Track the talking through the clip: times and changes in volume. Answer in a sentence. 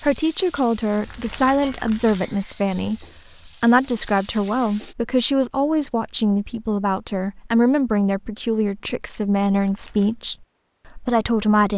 You can hear the talking from 0.0 to 11.7 s, at a steady volume.